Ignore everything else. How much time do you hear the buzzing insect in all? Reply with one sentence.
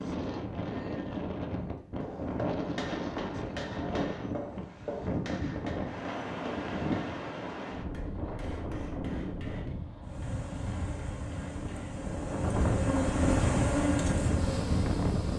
You can hear the buzzing insect for 5 seconds altogether.